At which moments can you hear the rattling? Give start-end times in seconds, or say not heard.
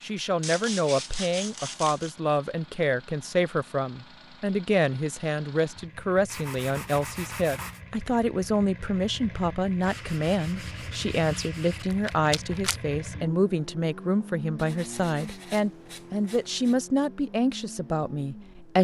11.8-12.8.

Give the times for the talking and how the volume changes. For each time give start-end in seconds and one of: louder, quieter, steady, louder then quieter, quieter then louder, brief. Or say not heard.
0.0-18.7 steady.